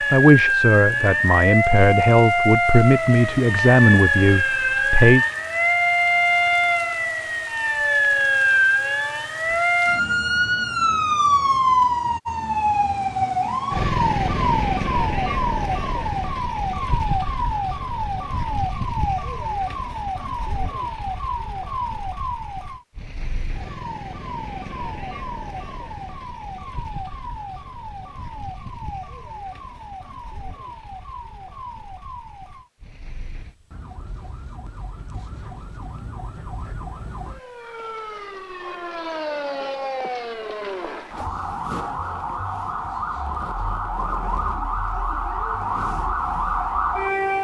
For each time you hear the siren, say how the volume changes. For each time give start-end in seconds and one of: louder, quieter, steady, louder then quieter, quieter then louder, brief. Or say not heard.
0.0-47.3 quieter then louder.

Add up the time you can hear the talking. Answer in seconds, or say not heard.
5 s.